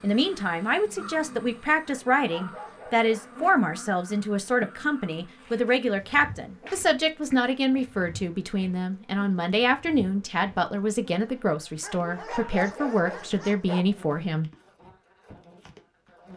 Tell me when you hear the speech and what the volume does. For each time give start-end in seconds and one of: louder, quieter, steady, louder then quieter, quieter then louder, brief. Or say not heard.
0.0-14.5 steady.